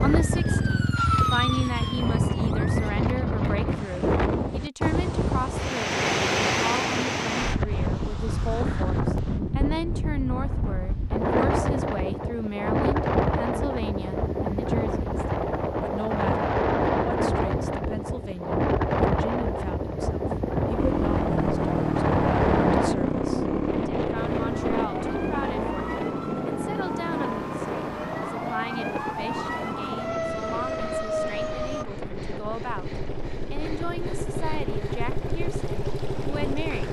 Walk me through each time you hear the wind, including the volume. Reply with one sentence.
You can hear the wind from 0.0 to 36.8 s, getting quieter.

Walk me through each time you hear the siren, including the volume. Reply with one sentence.
You can hear the siren briefly from 0.2 to 2.9 s; and from 24.1 to 31.9 s, getting louder.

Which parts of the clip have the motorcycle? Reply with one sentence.
The motorcycle can be heard from 0.0 to 3.9 s and from 20.8 to 36.8 s.